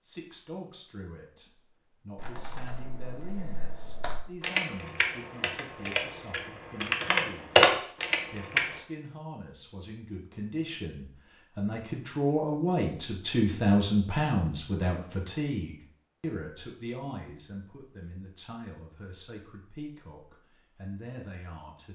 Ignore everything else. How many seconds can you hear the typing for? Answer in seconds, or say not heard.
7 s.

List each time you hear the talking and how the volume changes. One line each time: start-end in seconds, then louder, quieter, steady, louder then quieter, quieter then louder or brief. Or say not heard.
0.0-21.9 louder then quieter.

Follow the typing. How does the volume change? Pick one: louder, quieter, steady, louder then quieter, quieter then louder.
louder.